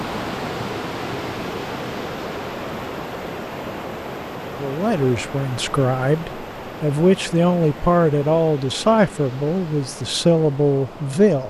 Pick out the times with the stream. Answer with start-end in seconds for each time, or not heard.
0.0-11.4.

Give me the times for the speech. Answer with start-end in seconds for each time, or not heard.
4.5-11.4.